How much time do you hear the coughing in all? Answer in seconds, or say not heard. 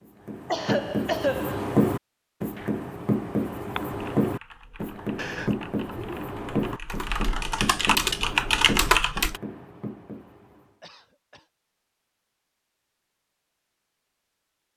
3 s.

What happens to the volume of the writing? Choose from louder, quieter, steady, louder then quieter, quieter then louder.
quieter.